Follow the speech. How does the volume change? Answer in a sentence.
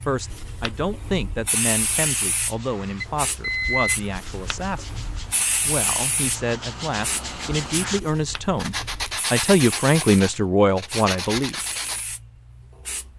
The loudness of the speech goes up.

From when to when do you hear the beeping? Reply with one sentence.
You can hear the beeping from 3.0 to 4.0 s.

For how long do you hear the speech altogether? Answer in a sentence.
You can hear the speech for 11 seconds altogether.